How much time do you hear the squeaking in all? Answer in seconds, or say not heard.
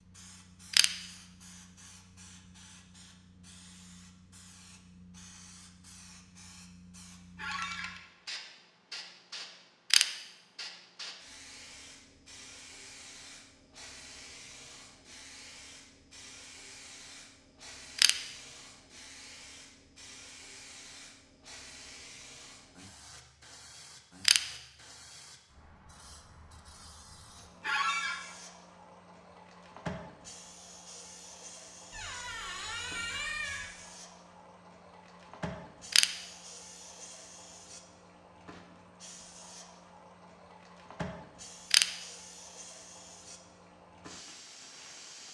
3 s.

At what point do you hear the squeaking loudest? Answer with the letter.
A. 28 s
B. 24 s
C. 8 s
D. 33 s
A.